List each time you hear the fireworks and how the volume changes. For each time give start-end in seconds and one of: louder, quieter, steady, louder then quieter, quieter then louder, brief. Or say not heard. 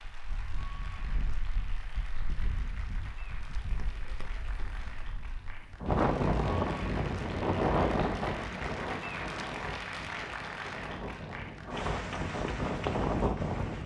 not heard.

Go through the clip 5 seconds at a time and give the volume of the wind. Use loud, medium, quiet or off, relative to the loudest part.
quiet, loud, loud.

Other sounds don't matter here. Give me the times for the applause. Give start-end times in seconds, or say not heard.
0.0-13.8.